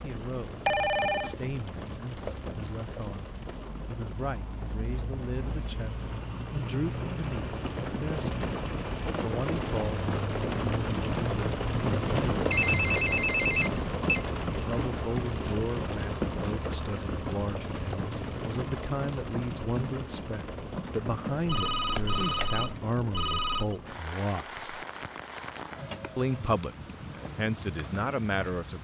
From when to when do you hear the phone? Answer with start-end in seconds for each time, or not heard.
0.7-1.4, 12.5-14.2, 21.4-23.8.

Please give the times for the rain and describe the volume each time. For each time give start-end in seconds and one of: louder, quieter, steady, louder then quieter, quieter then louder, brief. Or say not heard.
0.0-28.7 louder then quieter.